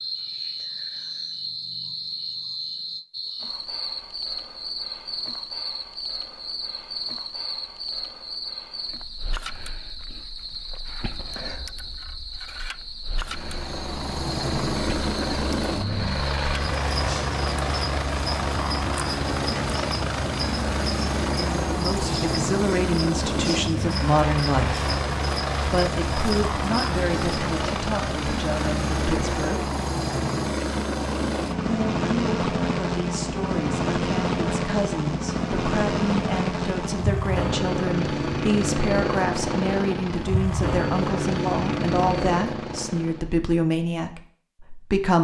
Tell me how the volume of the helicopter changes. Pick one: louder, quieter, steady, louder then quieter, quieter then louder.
steady.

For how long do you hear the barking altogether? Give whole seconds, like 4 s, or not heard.
not heard.